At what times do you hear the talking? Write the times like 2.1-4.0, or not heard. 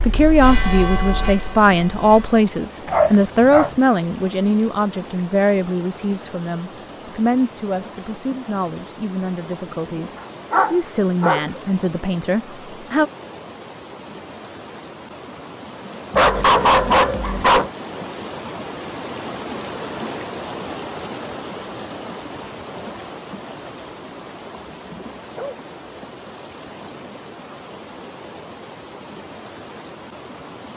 0.1-13.1.